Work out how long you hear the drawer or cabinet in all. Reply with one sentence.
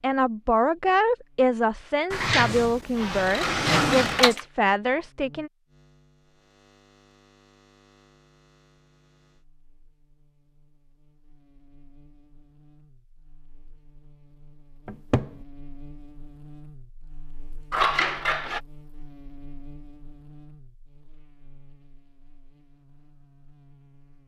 You can hear the drawer or cabinet for 3 seconds altogether.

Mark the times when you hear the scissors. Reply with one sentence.
The scissors can be heard from 3.2 to 4.4 s and from 17.7 to 18.6 s.